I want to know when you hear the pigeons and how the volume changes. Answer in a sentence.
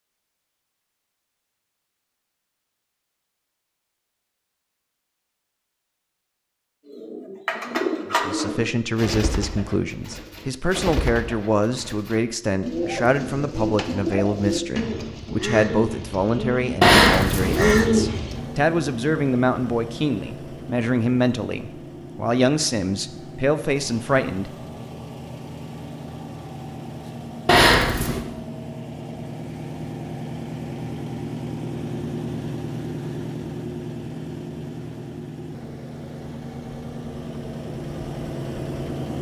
The pigeons can be heard from 6.8 to 18.4 s, getting quieter then louder.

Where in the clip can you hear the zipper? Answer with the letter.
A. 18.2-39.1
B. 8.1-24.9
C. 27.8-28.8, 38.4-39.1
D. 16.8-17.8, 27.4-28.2
D.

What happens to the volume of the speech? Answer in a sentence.
The volume of the speech stays about the same.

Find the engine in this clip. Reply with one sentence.
The engine can be heard from 18.2 to 39.1 s.